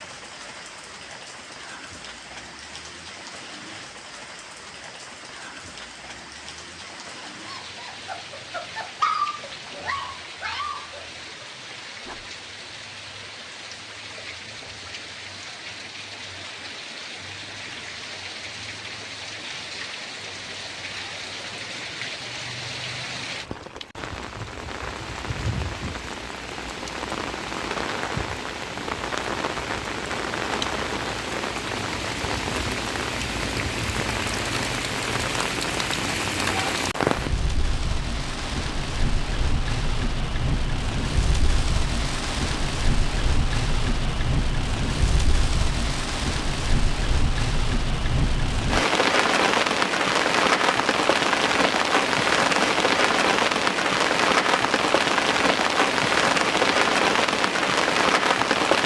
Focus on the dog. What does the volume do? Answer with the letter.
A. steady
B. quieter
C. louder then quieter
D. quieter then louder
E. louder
C.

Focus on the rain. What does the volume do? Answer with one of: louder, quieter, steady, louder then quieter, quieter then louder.
louder.